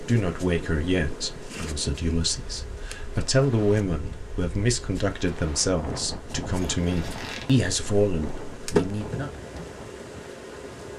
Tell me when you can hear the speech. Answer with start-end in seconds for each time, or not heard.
0.0-9.3.